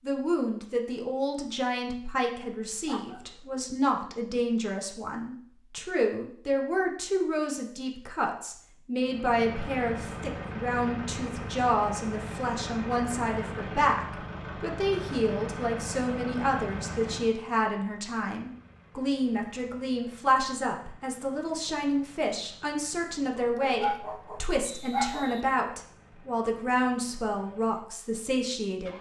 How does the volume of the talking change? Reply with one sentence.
The volume of the talking stays about the same.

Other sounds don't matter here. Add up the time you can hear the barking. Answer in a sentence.
You can hear the barking for 3 seconds altogether.